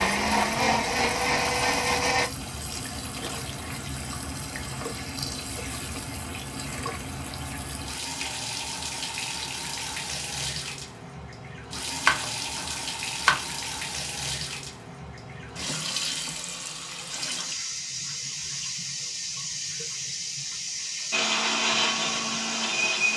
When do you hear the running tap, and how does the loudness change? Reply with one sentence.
The running tap can be heard from 0.0 to 23.1 s, at a steady volume.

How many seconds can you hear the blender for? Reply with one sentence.
You can hear the blender for 4 seconds altogether.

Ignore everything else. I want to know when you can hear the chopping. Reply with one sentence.
You can hear the chopping from 12.0 to 13.4 s.